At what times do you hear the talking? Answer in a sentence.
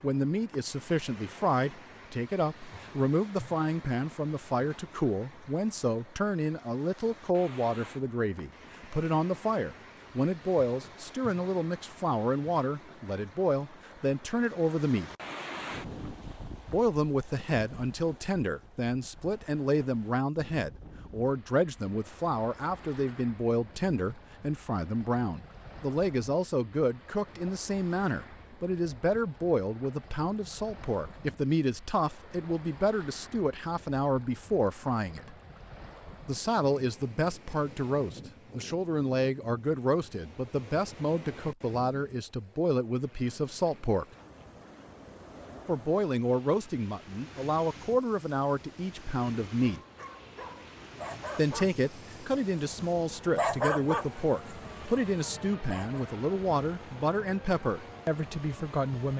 The talking can be heard from 0.0 to 15.1 s, from 16.7 to 35.4 s, from 36.2 to 44.1 s, from 45.6 to 49.8 s and from 51.4 to 59.1 s.